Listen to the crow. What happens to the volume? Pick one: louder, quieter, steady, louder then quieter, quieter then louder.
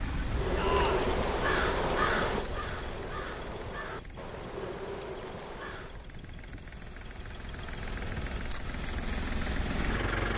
quieter.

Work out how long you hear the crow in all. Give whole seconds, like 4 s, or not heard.
6 s.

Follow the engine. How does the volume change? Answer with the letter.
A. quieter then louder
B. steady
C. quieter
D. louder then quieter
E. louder
A.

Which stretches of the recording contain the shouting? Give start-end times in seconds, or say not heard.
0.6-1.1.